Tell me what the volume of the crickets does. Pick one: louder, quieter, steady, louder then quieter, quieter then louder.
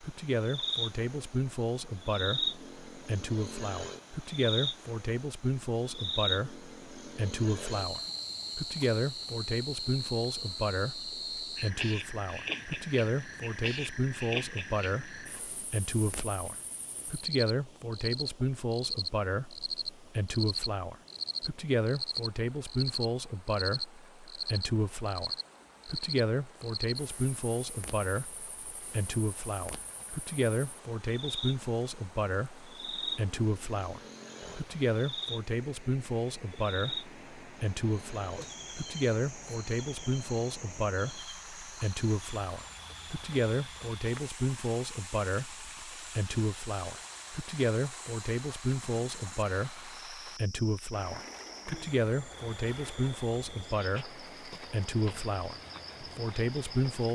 quieter.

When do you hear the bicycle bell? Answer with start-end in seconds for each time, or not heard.
not heard.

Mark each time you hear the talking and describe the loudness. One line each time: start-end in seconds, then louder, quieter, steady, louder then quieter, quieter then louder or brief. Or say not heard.
0.0-57.0 steady.